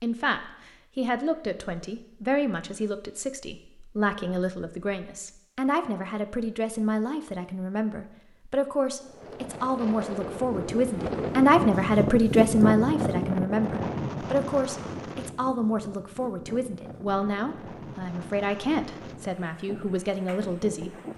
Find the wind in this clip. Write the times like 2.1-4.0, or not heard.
9.0-21.1.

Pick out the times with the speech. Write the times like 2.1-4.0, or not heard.
0.0-21.1.